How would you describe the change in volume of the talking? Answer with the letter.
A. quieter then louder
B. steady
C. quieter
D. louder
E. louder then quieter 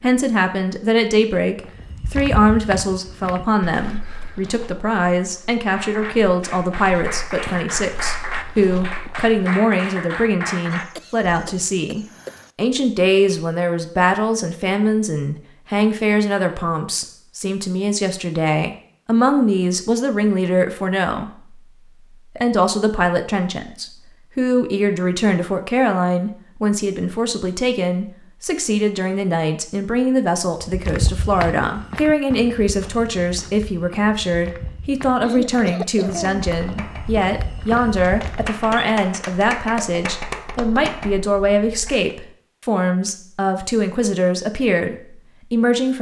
B.